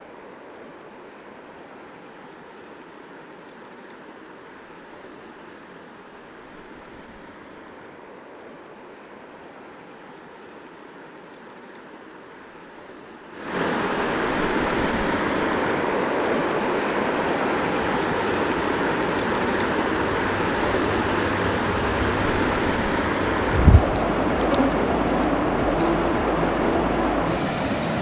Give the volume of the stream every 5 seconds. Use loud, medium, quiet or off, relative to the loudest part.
quiet, quiet, medium, loud, loud, loud.